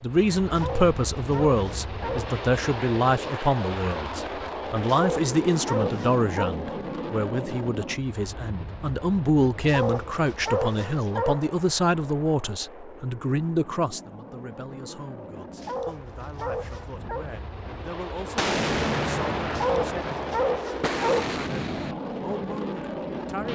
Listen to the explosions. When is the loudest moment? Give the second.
19 s.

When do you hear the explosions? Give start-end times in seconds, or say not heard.
18.4-21.9.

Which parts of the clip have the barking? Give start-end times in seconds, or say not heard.
0.5-2.4, 4.8-6.5, 9.6-11.5, 15.6-17.2, 19.5-21.4.